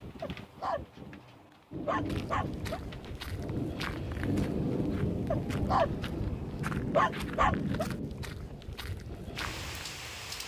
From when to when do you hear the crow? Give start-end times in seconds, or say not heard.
not heard.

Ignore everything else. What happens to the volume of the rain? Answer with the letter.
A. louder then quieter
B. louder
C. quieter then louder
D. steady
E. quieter
A.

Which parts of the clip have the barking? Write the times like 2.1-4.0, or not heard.
0.2-2.8, 5.3-7.8.